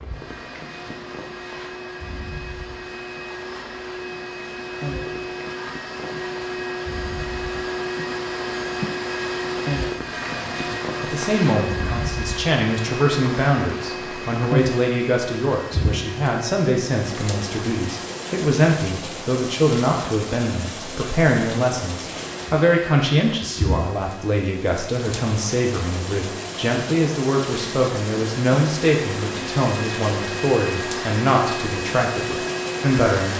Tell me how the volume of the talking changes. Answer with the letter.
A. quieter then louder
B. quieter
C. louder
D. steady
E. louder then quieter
D.